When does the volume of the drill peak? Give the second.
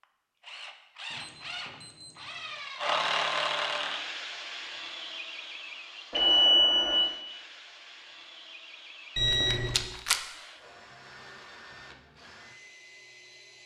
3 s.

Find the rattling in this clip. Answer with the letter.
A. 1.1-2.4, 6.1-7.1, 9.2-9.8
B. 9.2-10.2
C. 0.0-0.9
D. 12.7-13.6
B.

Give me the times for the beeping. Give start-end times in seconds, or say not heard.
1.1-2.4, 6.1-7.1, 9.2-9.8.